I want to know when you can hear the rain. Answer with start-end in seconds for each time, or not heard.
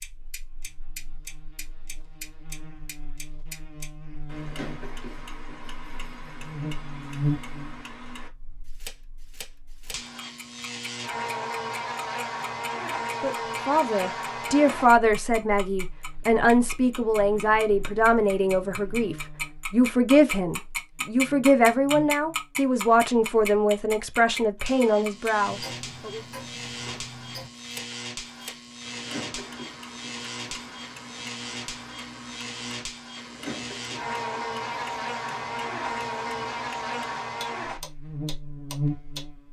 not heard.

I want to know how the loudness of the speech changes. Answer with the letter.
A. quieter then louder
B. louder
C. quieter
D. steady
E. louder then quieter
D.